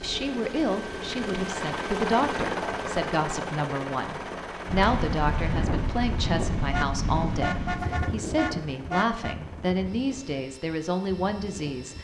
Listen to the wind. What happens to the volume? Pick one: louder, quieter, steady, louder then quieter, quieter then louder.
quieter.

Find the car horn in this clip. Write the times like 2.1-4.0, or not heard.
6.7-9.3.